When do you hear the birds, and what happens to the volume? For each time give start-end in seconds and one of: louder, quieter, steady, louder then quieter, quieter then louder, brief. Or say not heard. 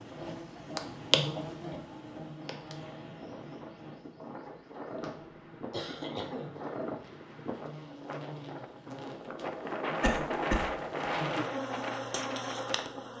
not heard.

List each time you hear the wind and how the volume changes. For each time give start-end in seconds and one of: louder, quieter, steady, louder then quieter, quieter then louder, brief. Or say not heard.
0.0-13.1 louder.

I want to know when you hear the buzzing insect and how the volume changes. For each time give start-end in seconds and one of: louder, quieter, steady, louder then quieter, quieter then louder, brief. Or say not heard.
0.0-13.1 quieter then louder.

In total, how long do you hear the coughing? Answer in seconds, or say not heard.
3 s.